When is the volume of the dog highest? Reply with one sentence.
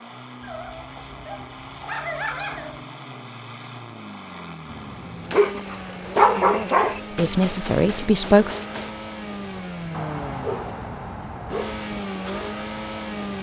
The loudest moment of the dog is at 6 seconds.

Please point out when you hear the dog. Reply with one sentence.
The dog can be heard from 0.4 to 2.9 s, from 5.3 to 7.0 s and from 9.9 to 11.8 s.